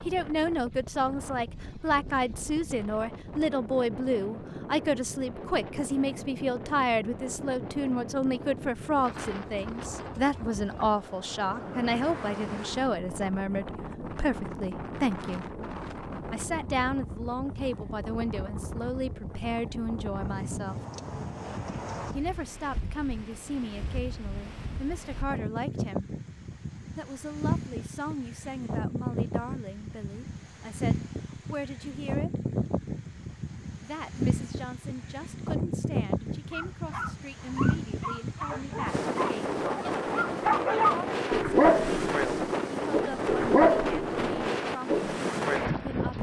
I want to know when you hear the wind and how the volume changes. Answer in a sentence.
You can hear the wind from 0.0 to 46.1 s, getting louder.